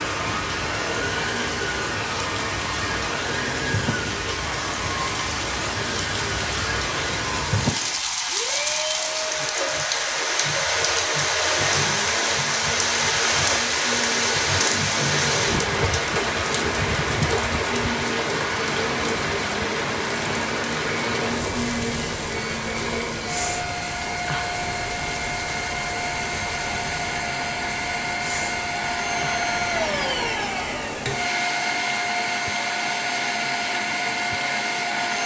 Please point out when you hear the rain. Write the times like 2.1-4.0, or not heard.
0.0-35.2.